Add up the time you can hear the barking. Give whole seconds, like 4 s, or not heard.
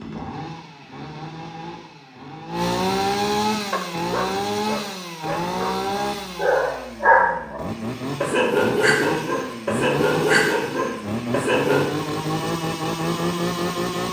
8 s.